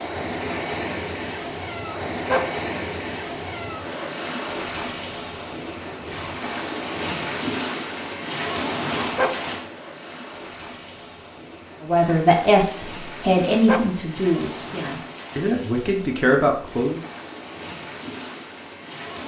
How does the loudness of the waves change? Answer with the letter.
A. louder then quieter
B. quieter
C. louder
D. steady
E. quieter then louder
B.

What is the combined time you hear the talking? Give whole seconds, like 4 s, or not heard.
5 s.